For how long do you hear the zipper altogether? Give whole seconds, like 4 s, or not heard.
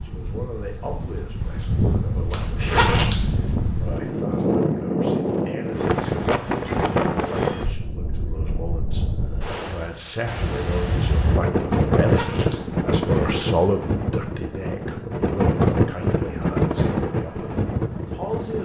3 s.